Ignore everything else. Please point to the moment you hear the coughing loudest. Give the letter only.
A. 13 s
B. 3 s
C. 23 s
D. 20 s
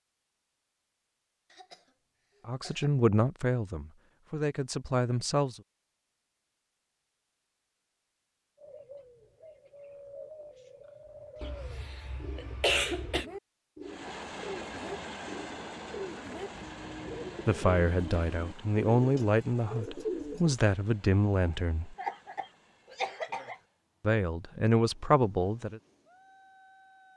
A.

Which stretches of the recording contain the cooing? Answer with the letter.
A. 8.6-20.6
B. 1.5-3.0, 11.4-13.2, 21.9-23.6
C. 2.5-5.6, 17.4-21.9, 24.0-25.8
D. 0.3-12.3
A.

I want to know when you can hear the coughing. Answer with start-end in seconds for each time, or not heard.
1.5-3.0, 11.4-13.2, 21.9-23.6.